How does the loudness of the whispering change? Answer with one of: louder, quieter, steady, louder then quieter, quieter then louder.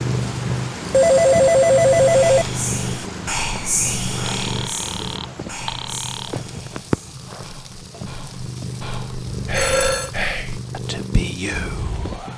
quieter then louder.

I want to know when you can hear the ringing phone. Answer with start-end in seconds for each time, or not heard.
0.9-2.5, 4.2-6.3, 9.2-10.1.